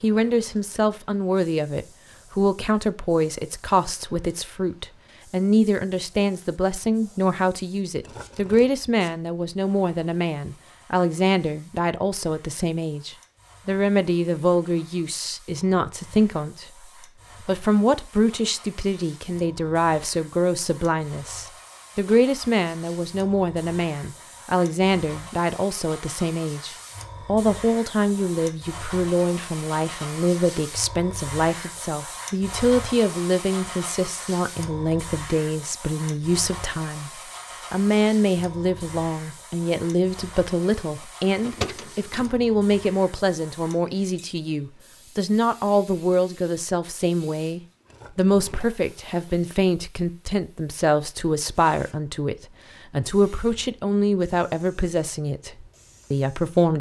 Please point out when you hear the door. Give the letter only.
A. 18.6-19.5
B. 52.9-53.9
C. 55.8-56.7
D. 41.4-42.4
D.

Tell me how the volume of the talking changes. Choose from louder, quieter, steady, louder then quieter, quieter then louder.
steady.